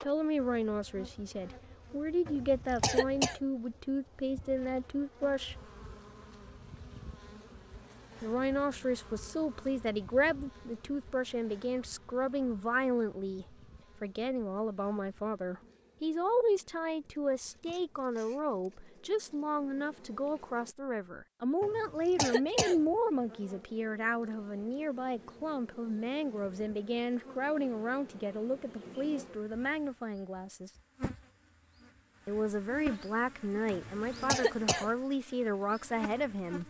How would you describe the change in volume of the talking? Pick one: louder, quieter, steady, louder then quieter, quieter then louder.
steady.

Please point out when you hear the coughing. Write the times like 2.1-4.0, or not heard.
2.2-3.4, 21.6-22.8, 33.7-34.9.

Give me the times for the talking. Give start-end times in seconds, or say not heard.
0.0-5.5, 8.2-30.7, 32.2-36.6.